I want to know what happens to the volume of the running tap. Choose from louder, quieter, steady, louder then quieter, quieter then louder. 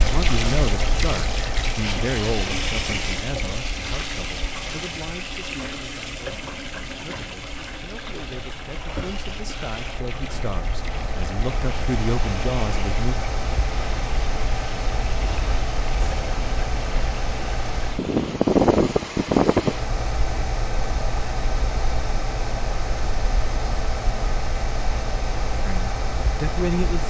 quieter.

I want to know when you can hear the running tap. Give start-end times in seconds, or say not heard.
0.0-18.4.